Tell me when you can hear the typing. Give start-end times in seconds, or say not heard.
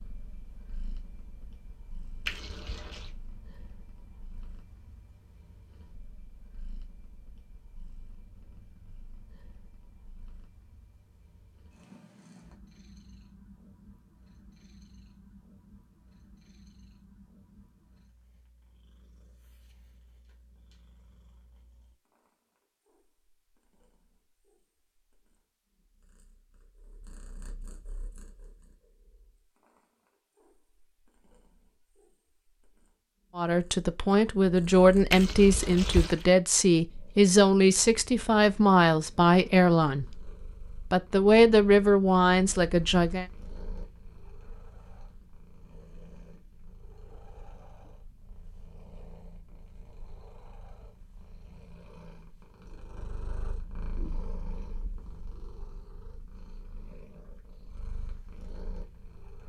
not heard.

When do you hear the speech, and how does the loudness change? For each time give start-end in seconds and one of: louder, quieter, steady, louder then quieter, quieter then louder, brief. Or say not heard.
33.4-40.3 steady
40.9-43.2 brief.